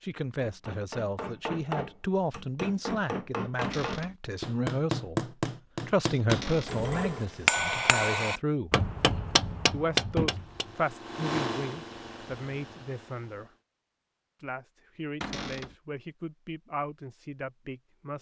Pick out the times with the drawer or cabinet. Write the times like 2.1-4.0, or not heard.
3.6-4.2, 6.2-6.8, 15.2-15.8.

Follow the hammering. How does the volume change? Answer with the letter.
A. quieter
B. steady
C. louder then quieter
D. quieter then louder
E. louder
E.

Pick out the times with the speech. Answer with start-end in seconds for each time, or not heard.
0.0-5.2, 5.8-8.7, 9.7-13.5, 14.4-18.1.